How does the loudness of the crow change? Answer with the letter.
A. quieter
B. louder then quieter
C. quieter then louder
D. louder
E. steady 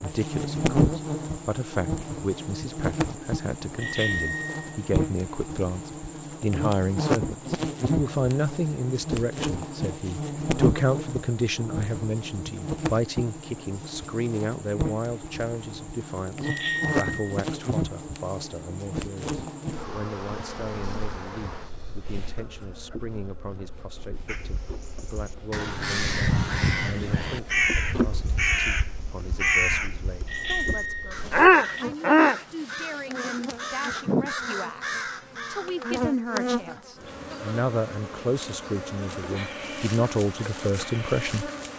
B.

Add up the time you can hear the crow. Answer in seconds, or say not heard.
12 s.